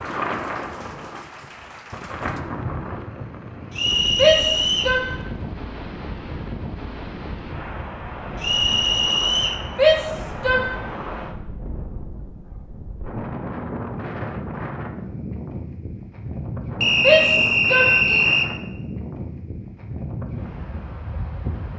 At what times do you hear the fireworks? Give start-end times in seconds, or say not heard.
not heard.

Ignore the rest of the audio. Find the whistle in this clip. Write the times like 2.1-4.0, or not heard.
3.8-5.0, 8.4-9.7, 16.8-18.5.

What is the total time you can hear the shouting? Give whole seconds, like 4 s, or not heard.
3 s.